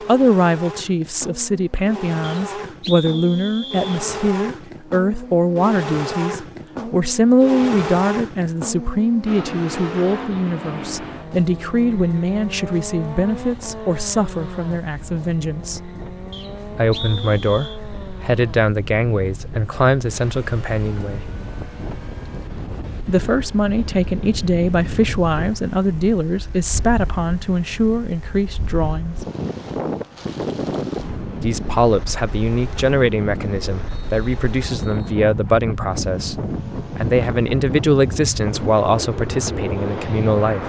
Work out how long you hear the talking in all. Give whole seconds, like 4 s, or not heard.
36 s.